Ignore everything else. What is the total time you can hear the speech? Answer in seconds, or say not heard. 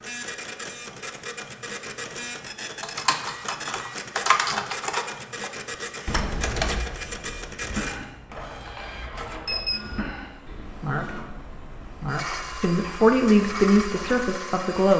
2 s.